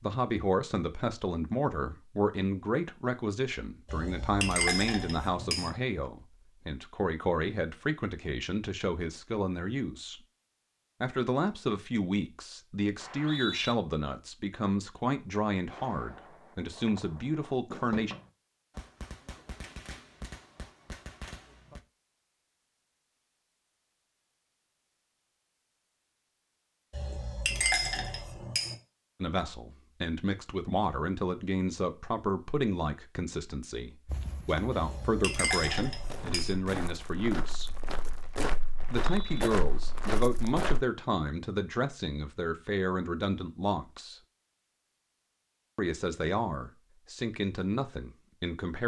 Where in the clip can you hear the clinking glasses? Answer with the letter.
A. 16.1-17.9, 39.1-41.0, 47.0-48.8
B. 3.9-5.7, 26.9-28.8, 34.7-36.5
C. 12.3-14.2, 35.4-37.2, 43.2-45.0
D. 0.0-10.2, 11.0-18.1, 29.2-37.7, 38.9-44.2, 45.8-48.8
B.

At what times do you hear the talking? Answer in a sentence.
You can hear the talking from 0.0 to 10.2 s, from 11.0 to 18.1 s, from 29.2 to 37.7 s, from 38.9 to 44.2 s and from 45.8 to 48.8 s.